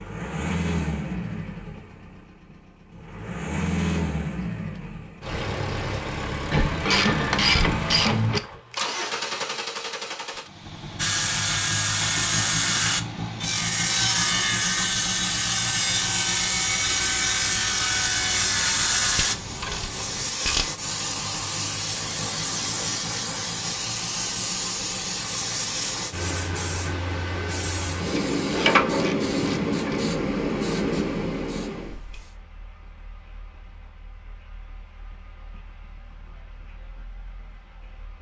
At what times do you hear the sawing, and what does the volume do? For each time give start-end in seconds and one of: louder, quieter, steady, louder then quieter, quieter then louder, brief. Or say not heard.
10.9-19.4 steady.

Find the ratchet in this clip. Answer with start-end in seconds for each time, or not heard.
6.5-8.4, 19.1-20.7, 28.1-30.0.